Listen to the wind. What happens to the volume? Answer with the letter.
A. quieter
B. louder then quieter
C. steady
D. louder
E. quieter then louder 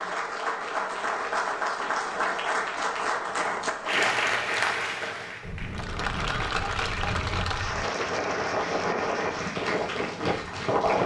D.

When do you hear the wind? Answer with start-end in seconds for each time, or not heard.
5.4-11.0.